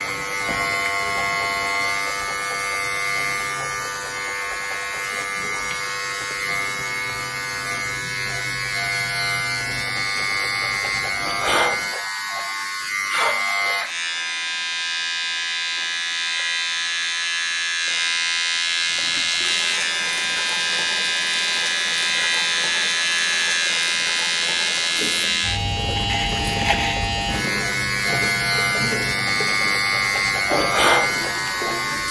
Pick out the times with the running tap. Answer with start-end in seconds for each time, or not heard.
18.8-32.0.